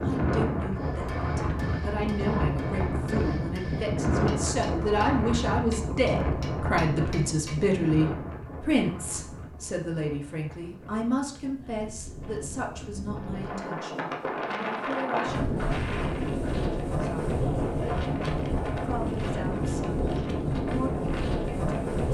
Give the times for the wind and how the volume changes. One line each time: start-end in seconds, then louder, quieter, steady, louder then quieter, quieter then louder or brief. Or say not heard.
0.0-22.0 quieter then louder.